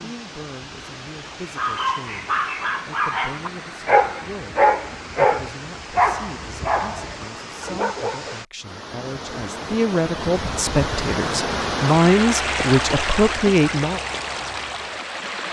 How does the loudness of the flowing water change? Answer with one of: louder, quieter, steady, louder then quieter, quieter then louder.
louder.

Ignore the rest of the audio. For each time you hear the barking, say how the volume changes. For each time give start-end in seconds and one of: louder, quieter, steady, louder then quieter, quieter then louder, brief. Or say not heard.
1.4-8.4 louder then quieter.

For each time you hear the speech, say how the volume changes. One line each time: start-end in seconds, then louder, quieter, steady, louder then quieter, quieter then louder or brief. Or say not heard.
0.0-14.0 louder.